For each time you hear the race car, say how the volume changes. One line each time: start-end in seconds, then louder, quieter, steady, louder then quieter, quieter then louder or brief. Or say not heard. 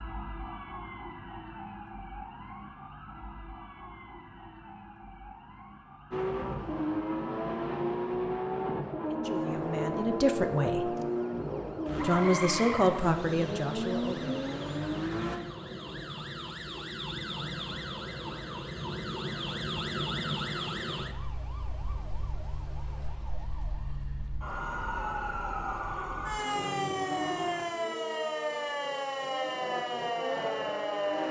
6.1-15.4 steady
26.4-31.2 quieter then louder.